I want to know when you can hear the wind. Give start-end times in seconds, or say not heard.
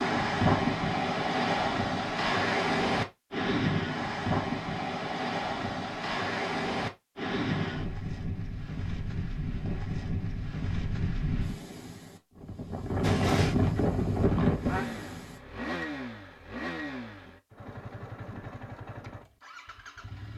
0.0-15.3.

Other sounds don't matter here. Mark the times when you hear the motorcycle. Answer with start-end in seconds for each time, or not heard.
13.0-20.3.